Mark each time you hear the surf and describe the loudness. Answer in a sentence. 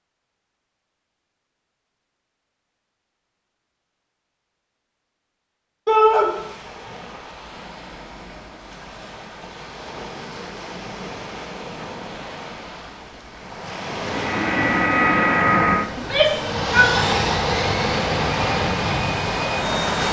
You can hear the surf from 6.0 to 20.0 s, getting louder.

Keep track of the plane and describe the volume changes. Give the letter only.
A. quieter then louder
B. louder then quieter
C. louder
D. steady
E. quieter
E.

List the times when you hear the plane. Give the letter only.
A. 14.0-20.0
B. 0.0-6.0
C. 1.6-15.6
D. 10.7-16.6
A.